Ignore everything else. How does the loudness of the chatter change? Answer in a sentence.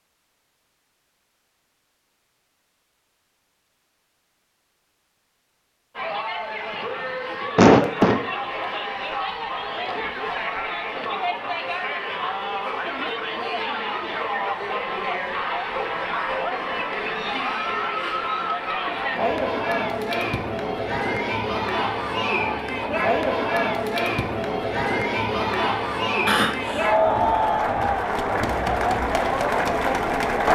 The loudness of the chatter goes up.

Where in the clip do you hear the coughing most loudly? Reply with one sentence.
The loudest moment of the coughing is at 8 seconds.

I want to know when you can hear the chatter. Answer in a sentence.
You can hear the chatter from 6.0 to 30.5 s.